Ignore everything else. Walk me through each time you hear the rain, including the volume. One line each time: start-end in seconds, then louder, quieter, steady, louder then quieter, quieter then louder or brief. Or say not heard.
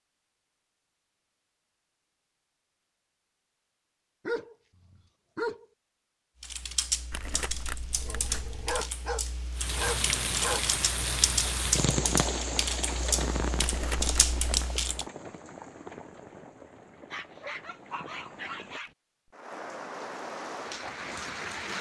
9.6-21.7 quieter then louder.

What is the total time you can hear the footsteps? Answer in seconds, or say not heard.
not heard.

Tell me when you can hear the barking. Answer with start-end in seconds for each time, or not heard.
4.2-5.7, 8.0-10.7, 17.1-18.9.